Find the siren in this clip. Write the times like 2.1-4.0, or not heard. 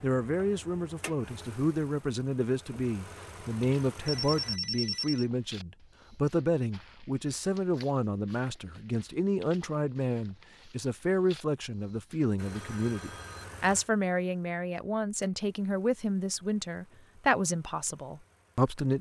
not heard.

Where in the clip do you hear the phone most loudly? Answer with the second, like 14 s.
5 s.